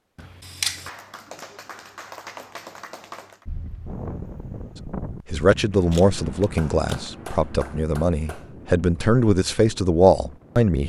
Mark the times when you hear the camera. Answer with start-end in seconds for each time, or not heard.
0.1-0.9, 5.9-7.1.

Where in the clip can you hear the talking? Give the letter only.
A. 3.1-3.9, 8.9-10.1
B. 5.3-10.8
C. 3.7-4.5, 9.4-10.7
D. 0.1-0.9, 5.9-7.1
B.